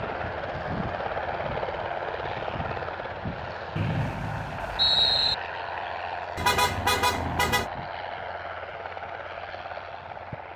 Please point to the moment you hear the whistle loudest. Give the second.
5 s.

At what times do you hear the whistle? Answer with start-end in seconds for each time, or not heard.
3.8-5.3.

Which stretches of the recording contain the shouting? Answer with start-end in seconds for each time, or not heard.
not heard.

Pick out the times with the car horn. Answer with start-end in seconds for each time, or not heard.
6.3-7.7.